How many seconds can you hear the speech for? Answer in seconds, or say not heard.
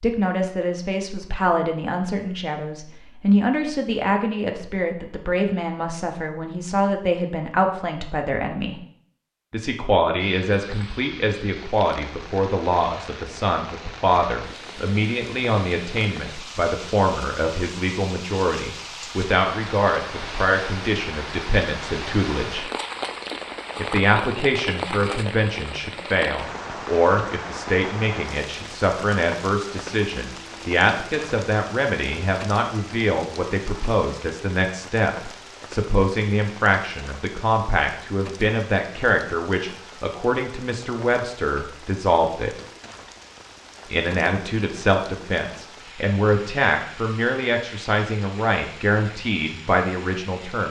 47 s.